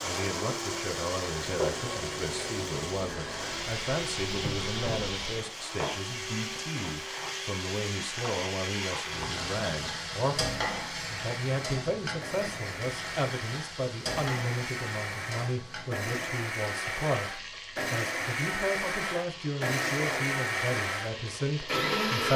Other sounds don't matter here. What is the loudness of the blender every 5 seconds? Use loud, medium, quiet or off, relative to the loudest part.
medium, quiet, medium, loud, loud.